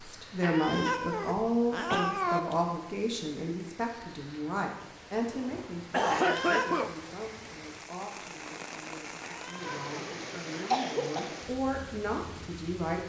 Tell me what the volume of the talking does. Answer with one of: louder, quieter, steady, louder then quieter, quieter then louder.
quieter then louder.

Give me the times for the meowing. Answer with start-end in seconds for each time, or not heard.
0.4-2.4, 6.0-7.0, 9.2-10.8.